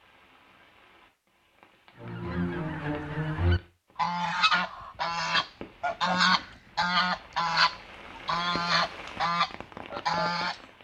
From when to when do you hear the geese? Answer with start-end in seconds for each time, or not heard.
2.0-10.6.